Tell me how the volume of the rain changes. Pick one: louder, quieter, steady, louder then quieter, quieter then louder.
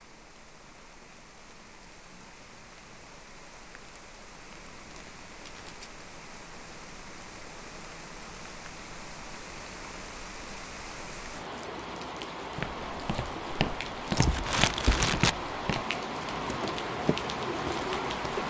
louder.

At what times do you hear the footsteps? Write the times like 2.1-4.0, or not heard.
12.6-18.4.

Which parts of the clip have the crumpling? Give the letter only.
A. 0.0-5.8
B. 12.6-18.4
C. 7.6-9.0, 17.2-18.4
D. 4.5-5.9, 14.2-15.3
D.